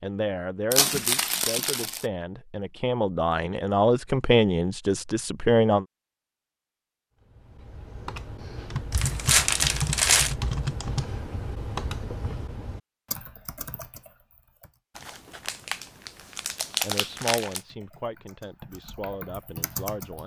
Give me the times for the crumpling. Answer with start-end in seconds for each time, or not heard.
0.7-2.0, 8.9-10.3, 14.9-17.6.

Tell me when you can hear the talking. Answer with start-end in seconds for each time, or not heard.
0.0-5.8, 16.8-20.2.